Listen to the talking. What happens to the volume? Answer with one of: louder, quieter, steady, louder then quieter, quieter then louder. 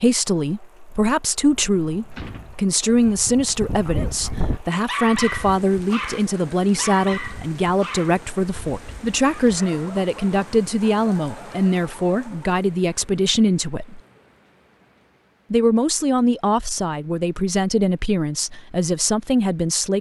steady.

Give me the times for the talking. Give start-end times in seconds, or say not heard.
0.0-14.0, 15.5-19.9.